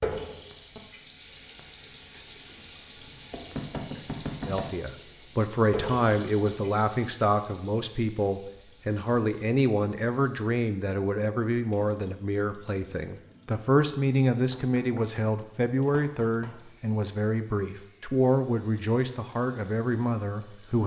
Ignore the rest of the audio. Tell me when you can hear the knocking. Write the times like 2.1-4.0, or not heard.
3.3-4.7, 14.5-15.1, 15.9-16.5.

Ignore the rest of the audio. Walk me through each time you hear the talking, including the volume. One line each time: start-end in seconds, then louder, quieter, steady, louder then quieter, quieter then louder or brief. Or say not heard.
4.5-20.8 steady.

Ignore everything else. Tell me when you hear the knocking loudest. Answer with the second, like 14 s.
4 s.